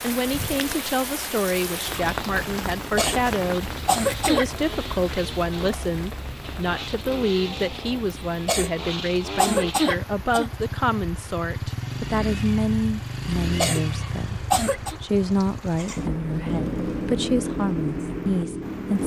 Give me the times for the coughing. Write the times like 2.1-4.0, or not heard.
3.0-4.5, 8.4-10.5, 13.6-14.9.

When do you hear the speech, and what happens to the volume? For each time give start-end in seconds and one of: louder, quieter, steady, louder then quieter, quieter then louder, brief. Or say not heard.
0.0-19.0 steady.